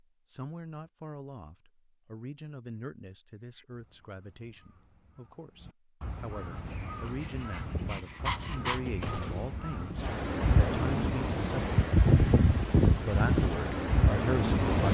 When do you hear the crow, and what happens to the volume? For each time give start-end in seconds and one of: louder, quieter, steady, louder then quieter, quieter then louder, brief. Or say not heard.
3.4-10.2 louder.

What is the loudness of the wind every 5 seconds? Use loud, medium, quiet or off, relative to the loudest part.
off, quiet, loud.